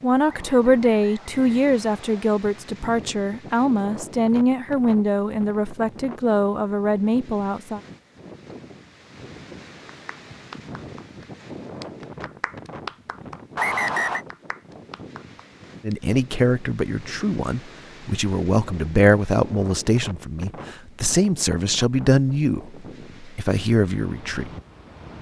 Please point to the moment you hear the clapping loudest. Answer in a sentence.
The volume of the clapping peaks at 13 seconds.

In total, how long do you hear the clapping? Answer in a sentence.
The clapping can be heard for 6 seconds in total.